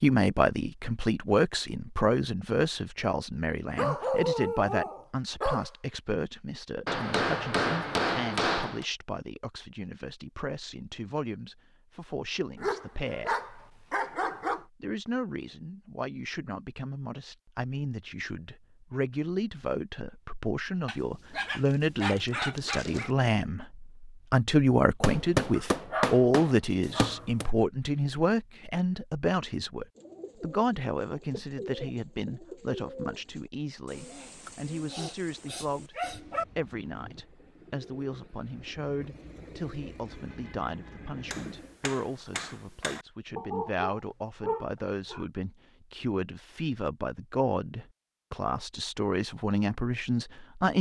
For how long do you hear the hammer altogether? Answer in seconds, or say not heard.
6 s.